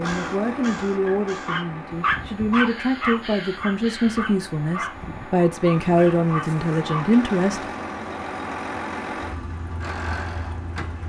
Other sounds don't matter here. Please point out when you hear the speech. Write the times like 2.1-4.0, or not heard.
0.0-7.6.